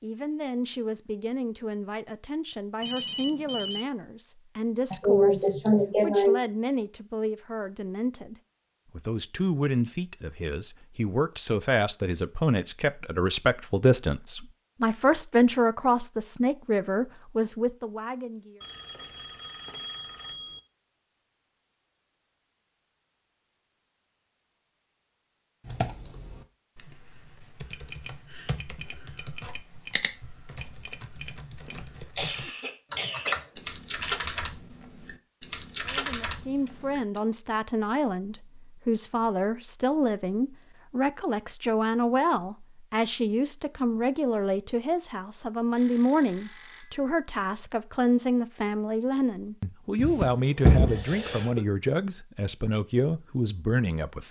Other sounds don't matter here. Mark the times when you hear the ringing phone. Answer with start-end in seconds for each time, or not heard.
2.8-3.9, 18.6-20.6, 45.8-47.1.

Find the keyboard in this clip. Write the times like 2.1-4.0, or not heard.
25.6-37.2.